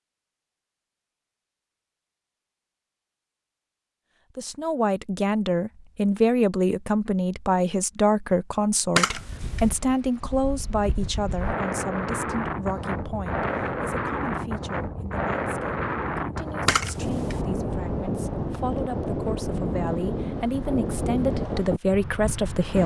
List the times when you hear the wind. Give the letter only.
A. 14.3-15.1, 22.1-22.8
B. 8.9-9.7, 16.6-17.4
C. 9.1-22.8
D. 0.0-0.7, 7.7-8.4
C.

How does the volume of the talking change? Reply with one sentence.
The volume of the talking goes down, then up.